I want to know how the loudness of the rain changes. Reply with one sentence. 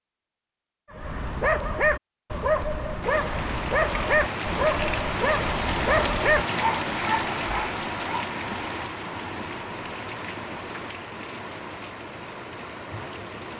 The volume of the rain goes down.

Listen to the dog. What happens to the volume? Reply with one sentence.
The loudness of the dog stays about the same.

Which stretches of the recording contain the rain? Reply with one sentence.
The rain can be heard from 3.0 to 13.5 s.